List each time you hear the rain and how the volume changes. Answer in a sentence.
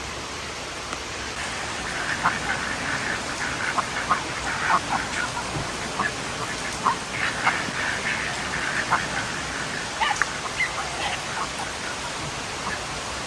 You can hear the rain from 0.0 to 13.2 s, at a steady volume.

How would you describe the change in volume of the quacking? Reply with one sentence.
The volume of the quacking goes down.